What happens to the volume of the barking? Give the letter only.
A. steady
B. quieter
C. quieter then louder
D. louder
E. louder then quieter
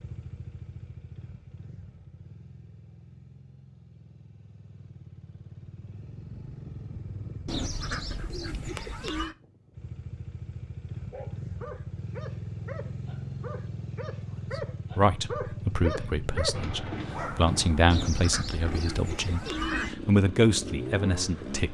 D.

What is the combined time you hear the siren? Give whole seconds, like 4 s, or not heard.
not heard.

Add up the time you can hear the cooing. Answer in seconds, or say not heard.
4 s.